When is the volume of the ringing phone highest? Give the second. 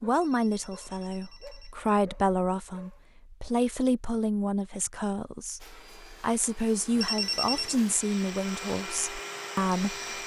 7 s.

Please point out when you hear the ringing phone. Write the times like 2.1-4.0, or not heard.
0.1-1.8, 7.0-7.8.